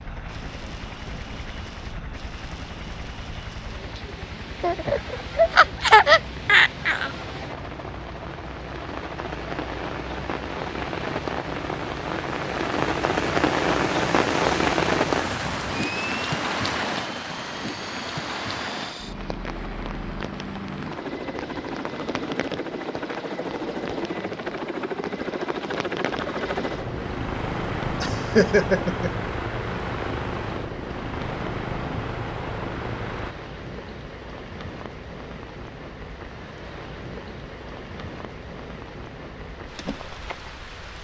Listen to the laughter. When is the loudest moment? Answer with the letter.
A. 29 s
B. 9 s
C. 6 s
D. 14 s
C.